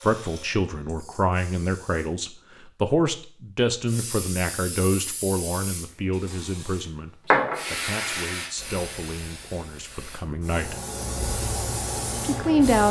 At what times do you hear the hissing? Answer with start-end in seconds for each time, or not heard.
0.0-2.1, 3.9-12.8.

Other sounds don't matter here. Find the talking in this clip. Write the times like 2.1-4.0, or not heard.
0.0-10.8, 12.2-12.8.